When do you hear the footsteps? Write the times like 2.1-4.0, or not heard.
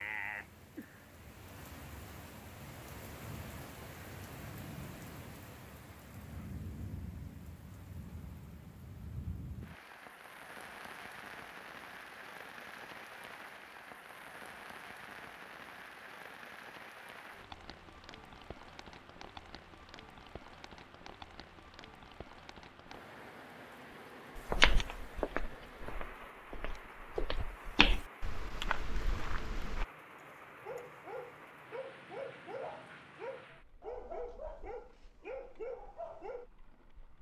24.4-29.9.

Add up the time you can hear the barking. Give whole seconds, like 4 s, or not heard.
6 s.